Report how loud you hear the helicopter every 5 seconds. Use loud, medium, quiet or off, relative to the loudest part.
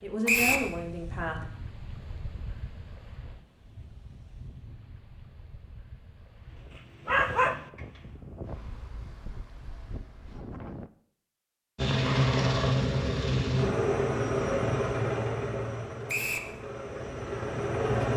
off, off, loud, medium.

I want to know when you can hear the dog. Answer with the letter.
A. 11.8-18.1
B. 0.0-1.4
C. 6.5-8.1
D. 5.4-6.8
C.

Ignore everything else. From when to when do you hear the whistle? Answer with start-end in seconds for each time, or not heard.
0.2-0.7, 16.1-16.5.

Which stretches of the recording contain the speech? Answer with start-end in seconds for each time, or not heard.
0.0-1.4.